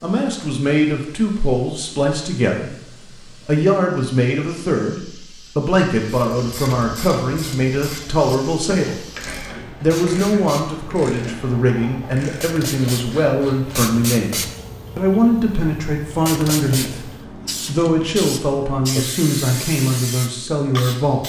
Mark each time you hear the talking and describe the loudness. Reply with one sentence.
The talking can be heard briefly from 0.0 to 2.8 s; and from 3.5 to 21.2 s, at a steady volume.